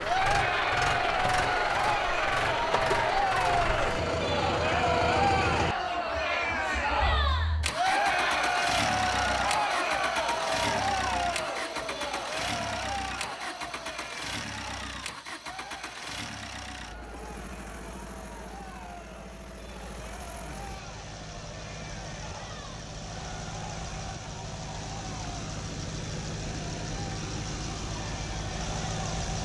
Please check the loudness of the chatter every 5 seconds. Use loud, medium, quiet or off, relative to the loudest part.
loud, loud, medium, quiet, quiet, quiet.